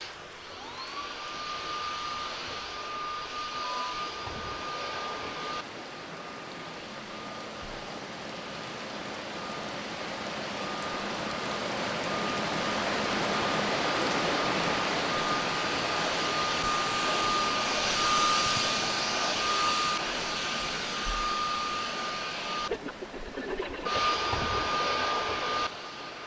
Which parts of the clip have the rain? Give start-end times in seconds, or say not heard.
0.0-26.2.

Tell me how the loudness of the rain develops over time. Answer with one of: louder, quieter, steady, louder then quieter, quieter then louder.
louder then quieter.